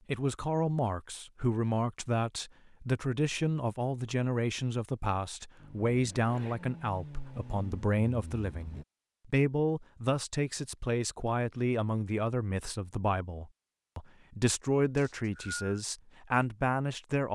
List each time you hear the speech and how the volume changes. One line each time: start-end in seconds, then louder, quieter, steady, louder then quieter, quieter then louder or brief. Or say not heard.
0.1-17.2 steady.